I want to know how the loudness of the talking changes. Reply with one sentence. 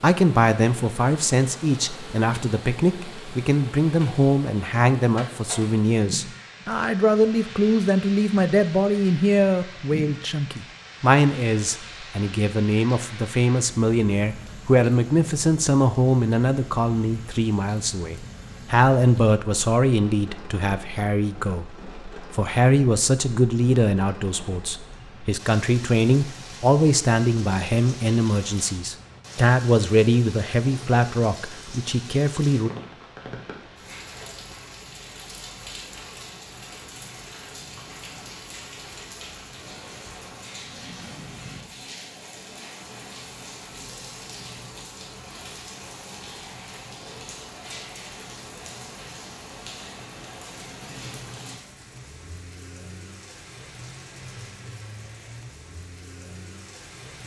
The volume of the talking stays about the same.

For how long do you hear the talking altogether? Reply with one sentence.
The talking can be heard for 33 seconds in total.